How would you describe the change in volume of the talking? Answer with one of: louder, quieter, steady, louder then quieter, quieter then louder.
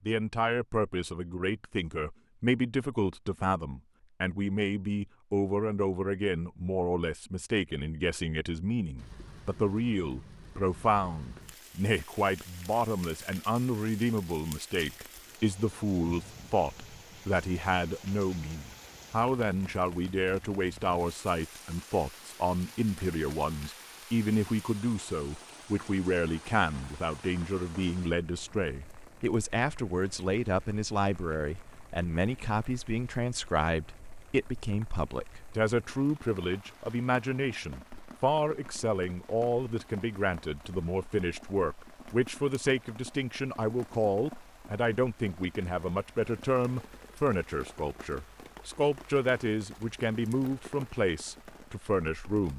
steady.